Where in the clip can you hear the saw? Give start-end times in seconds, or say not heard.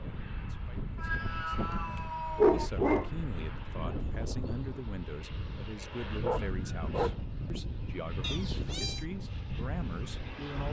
not heard.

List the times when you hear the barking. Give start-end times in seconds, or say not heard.
2.4-3.1, 6.2-7.5.